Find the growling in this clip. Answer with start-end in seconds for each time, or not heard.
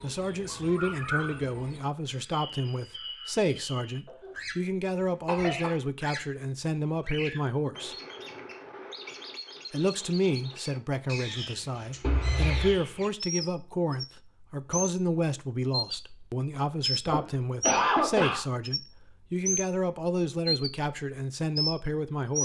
not heard.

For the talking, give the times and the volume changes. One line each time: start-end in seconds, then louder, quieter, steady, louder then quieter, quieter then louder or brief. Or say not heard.
0.0-8.0 steady
9.7-22.4 steady.